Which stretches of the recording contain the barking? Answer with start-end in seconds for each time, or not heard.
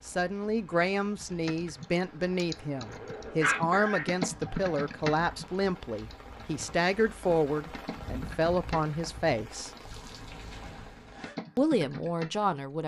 3.4-4.8.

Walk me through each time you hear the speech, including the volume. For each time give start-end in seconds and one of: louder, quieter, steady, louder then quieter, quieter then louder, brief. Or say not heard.
0.1-9.7 steady
11.6-12.8 brief.